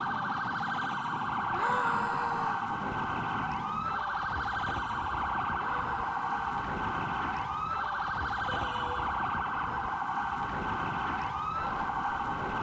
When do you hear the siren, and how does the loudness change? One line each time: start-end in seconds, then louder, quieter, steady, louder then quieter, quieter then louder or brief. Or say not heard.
0.0-12.5 steady.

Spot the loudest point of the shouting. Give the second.
2 s.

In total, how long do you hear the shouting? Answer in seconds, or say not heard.
3 s.